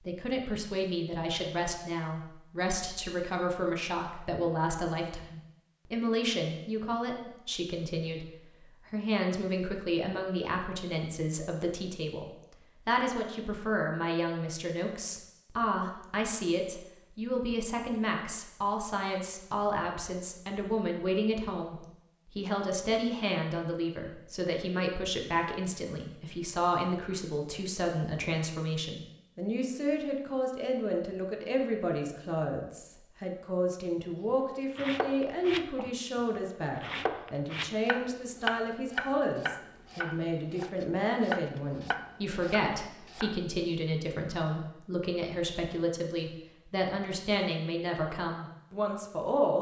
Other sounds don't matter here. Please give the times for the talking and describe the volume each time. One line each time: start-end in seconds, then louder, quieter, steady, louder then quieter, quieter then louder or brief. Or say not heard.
0.1-49.5 steady.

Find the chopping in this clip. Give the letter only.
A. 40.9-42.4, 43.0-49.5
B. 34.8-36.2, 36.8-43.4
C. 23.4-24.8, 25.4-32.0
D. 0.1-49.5
B.